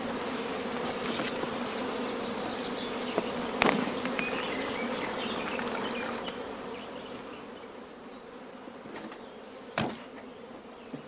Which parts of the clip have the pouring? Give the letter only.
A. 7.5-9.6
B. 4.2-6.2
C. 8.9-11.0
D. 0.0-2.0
B.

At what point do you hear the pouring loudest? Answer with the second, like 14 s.
6 s.